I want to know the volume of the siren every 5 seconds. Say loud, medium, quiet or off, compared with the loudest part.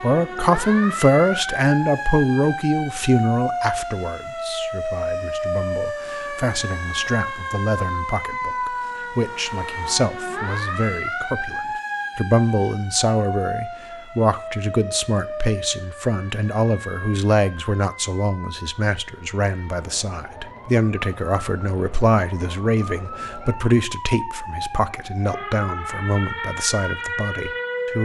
loud, loud, loud, medium, medium, loud.